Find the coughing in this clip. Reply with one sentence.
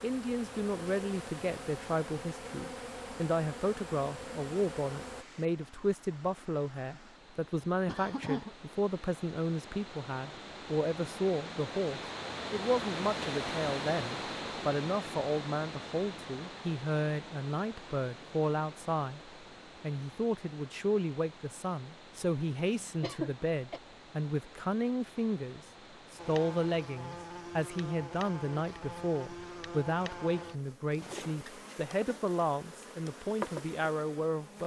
The coughing can be heard from 7.8 to 8.6 s and from 22.6 to 23.8 s.